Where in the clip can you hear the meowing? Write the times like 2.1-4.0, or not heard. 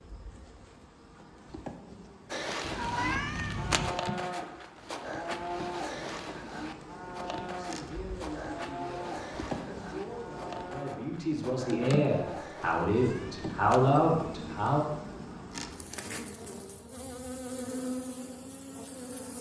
2.6-4.0, 12.8-13.9.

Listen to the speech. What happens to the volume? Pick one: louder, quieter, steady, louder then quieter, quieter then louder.
louder.